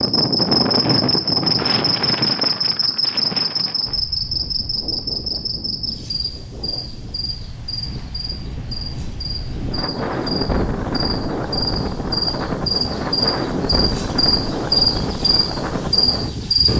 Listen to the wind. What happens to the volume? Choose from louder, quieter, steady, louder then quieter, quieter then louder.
quieter then louder.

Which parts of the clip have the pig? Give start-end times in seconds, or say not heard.
not heard.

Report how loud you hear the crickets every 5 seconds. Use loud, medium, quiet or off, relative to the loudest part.
loud, medium, loud, loud.